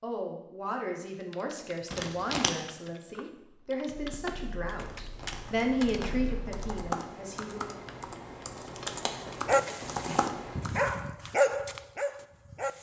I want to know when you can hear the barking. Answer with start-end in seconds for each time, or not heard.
9.4-12.7.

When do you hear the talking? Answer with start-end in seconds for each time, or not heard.
0.0-7.8.